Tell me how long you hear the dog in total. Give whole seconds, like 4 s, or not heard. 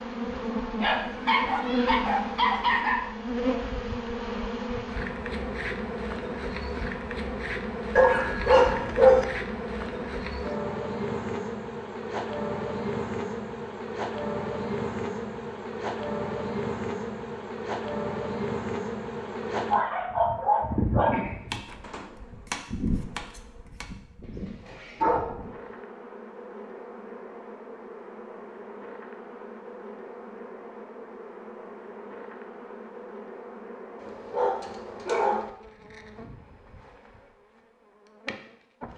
8 s.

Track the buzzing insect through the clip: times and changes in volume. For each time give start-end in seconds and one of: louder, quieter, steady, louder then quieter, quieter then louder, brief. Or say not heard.
0.0-38.9 quieter.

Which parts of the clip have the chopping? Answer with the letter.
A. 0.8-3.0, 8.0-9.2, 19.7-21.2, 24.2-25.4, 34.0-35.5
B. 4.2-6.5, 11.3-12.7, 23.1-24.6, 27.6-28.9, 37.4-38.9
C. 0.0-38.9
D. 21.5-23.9
D.